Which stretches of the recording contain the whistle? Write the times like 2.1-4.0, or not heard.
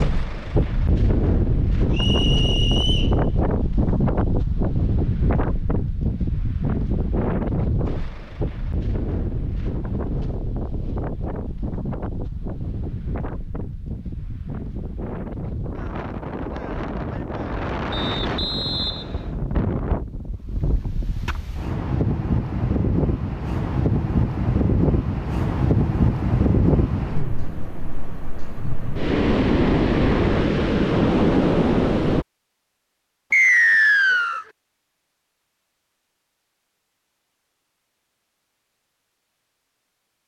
1.9-3.1, 17.9-19.3, 33.3-34.5.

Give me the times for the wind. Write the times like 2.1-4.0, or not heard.
0.0-32.2.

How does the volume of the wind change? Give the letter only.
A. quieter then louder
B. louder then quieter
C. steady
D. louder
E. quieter
A.